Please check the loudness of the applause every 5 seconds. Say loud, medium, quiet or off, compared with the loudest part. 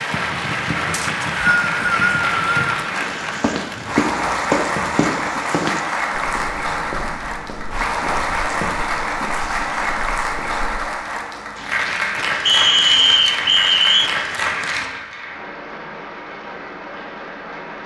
loud, loud, loud, medium.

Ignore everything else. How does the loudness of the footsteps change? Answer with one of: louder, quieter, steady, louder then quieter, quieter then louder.
quieter.